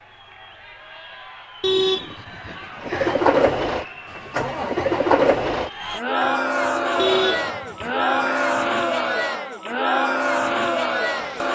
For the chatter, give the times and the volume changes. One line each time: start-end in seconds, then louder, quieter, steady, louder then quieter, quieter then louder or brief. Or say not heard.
0.0-11.4 louder.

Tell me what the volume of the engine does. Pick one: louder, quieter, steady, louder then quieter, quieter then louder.
quieter.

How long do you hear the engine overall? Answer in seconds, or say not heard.
9 s.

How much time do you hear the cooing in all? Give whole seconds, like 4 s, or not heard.
not heard.